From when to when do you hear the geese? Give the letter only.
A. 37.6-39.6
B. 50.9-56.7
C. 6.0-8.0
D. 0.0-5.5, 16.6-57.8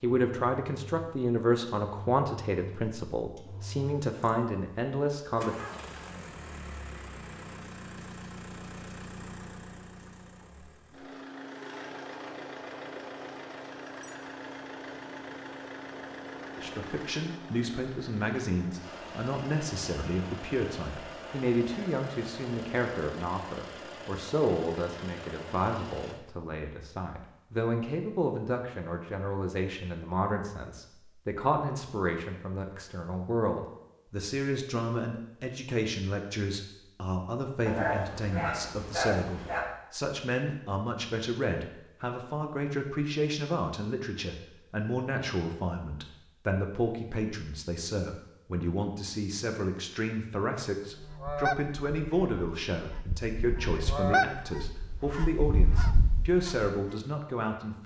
B.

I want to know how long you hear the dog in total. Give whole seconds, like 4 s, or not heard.
2 s.